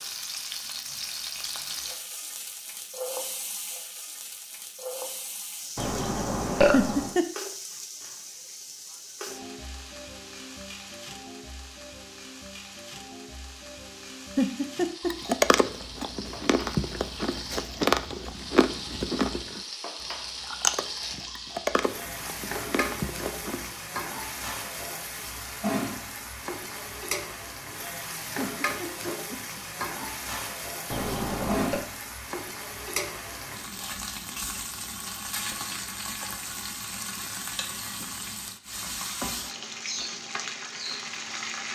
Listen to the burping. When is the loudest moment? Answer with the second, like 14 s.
7 s.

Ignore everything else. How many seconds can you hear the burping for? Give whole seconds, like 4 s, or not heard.
2 s.